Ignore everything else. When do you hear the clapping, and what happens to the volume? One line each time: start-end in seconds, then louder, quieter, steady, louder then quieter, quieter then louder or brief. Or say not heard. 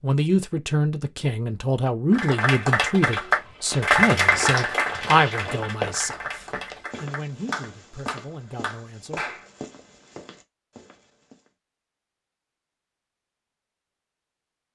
2.1-9.4 quieter.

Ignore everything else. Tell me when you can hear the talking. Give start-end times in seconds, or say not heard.
0.0-9.2.